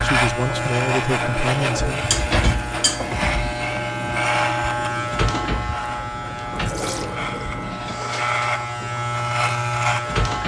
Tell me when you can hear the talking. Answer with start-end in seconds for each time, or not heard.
0.0-2.1.